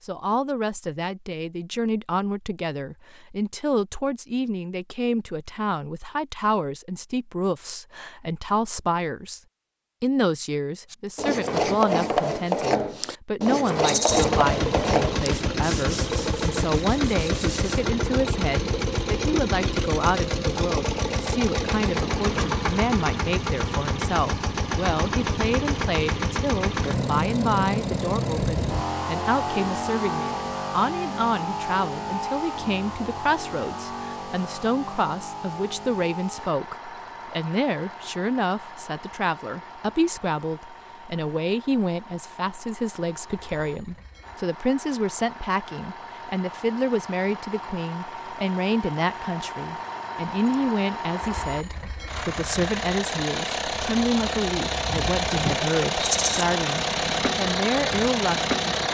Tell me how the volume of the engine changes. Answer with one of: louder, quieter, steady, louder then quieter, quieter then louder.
quieter then louder.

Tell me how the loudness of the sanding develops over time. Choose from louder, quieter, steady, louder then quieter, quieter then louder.
quieter.